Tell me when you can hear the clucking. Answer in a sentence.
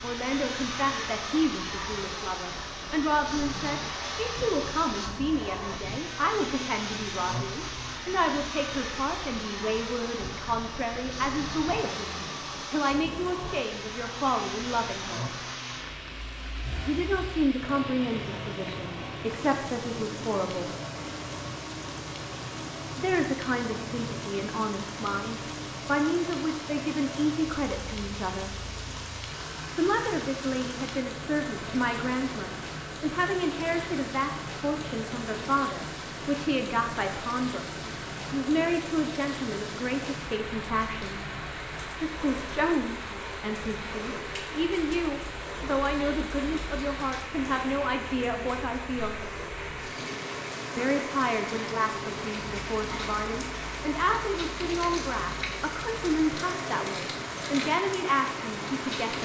The clucking can't be heard in this clip.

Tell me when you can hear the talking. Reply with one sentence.
You can hear the talking from 0.0 to 15.2 s, from 16.9 to 20.8 s, from 22.9 to 28.6 s, from 29.8 to 41.2 s, from 42.0 to 49.1 s and from 50.8 to 59.2 s.